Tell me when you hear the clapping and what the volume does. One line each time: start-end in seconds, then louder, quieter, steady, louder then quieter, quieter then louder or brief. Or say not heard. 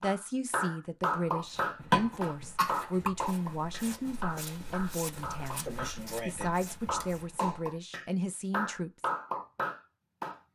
0.0-10.4 quieter then louder.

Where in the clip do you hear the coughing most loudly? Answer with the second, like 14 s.
2 s.